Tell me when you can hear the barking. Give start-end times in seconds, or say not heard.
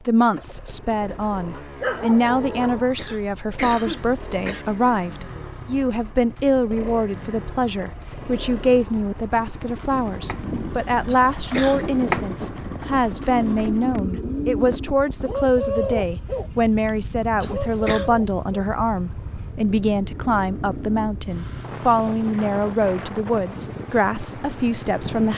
1.6-3.1.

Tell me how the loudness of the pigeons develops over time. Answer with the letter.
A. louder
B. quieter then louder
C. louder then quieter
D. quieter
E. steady
C.